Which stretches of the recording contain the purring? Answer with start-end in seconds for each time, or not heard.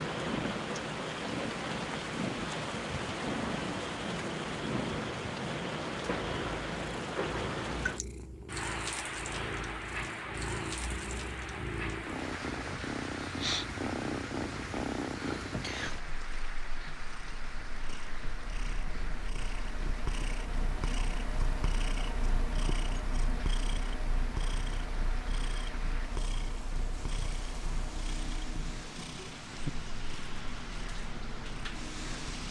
0.1-32.4.